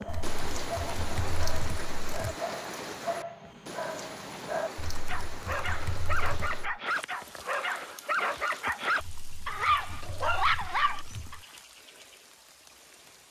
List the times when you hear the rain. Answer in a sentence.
The rain can be heard from 0.0 to 13.2 s.